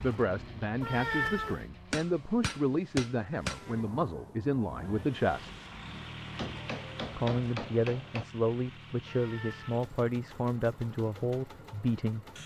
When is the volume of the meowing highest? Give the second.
1 s.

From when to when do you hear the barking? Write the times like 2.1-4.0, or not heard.
not heard.